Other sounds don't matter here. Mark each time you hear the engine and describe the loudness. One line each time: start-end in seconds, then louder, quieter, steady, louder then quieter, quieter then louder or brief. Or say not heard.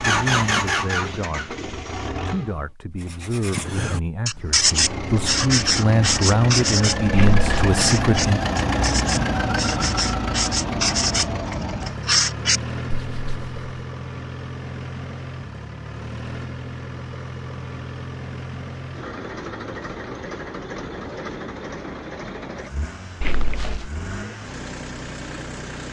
0.0-2.6 brief
4.4-25.8 quieter.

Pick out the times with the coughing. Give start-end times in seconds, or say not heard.
7.1-7.8, 23.2-23.9.